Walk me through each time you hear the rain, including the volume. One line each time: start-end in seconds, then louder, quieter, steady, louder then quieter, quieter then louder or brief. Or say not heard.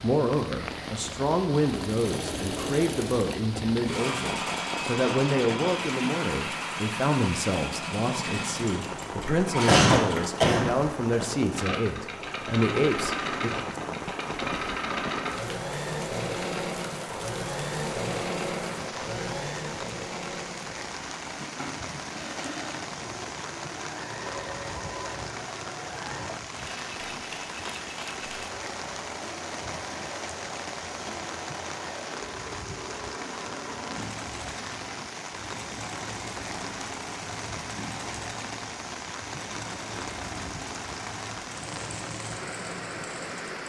0.0-43.6 steady.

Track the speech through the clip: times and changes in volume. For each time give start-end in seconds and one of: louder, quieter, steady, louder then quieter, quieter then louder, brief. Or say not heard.
0.0-13.5 steady.